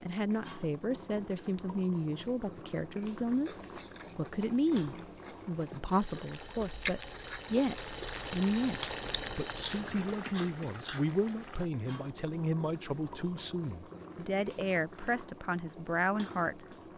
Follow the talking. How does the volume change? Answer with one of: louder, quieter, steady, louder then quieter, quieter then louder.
steady.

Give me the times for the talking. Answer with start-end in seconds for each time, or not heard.
0.0-16.6.